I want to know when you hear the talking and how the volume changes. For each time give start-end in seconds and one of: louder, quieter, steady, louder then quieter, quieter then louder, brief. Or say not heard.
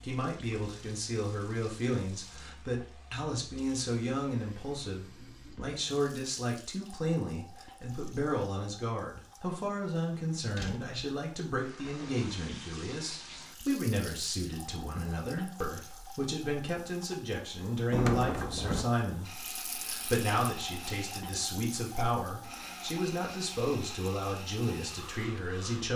0.0-25.9 steady.